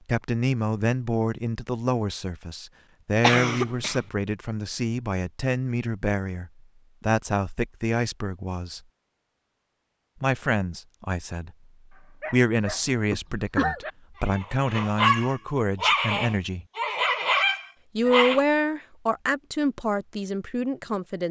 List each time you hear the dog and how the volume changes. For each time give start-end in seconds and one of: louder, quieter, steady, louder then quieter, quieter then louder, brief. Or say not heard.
11.9-18.4 louder.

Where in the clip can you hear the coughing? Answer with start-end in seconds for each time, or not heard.
3.2-4.0, 13.1-13.8.